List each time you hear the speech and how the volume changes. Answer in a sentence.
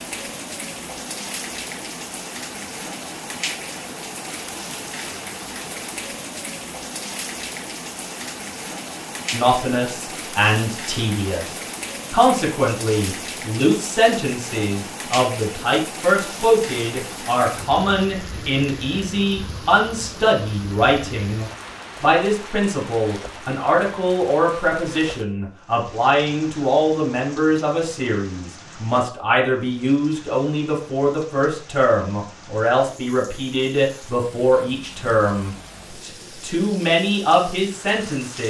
You can hear the speech from 9.3 to 38.4 s, at a steady volume.